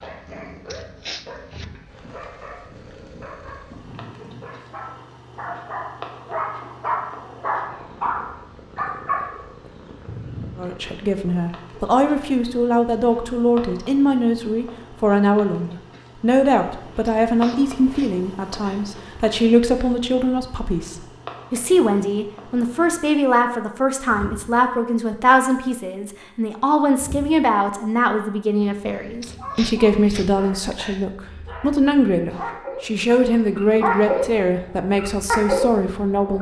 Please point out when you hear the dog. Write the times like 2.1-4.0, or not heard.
0.0-10.6, 29.4-36.3.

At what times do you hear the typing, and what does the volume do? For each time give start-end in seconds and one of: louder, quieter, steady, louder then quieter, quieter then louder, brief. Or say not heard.
not heard.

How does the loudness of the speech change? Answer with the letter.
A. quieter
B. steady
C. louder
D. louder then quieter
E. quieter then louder
B.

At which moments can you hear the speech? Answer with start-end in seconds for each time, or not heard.
10.6-36.3.